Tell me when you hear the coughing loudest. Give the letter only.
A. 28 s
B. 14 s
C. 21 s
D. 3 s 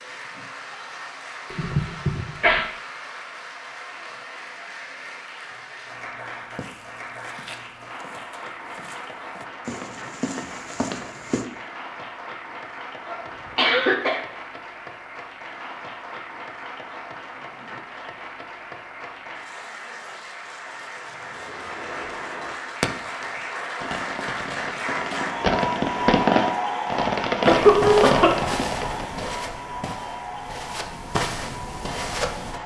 A.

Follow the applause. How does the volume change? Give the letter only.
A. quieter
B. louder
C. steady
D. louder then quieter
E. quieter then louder
B.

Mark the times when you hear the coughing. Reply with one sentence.
The coughing can be heard from 1.5 to 2.6 s, from 13.1 to 14.2 s and from 27.4 to 28.4 s.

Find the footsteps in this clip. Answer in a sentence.
The footsteps can be heard from 6.3 to 11.4 s and from 27.6 to 32.6 s.